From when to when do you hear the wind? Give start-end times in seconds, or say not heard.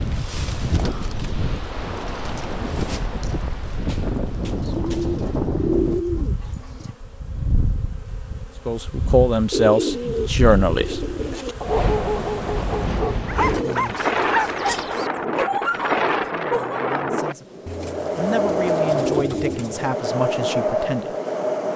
0.0-21.7.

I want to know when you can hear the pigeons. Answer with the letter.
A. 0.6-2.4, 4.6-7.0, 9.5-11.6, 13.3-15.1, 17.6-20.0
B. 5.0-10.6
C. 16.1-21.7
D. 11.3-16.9
A.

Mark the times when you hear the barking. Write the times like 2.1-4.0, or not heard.
11.3-16.9.